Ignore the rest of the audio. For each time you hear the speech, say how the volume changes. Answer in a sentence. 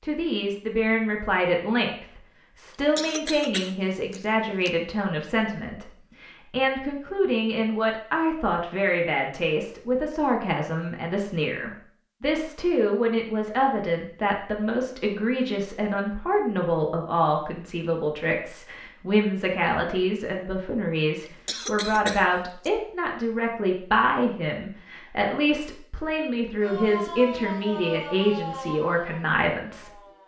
The speech can be heard from 0.0 to 30.2 s, at a steady volume.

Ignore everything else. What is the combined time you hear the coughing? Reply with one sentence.
The coughing can be heard for 3 seconds in total.